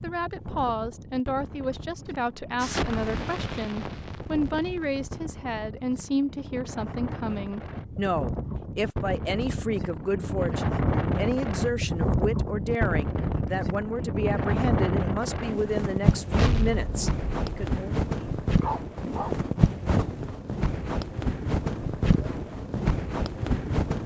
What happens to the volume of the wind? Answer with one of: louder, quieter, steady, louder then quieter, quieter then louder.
louder.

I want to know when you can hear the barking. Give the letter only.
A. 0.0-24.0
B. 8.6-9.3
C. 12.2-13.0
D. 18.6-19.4
D.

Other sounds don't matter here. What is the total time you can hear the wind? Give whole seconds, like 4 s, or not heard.
24 s.